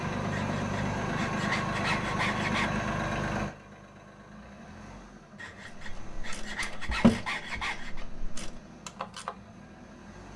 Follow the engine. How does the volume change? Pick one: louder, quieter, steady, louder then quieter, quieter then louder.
quieter.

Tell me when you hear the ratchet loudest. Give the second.
7 s.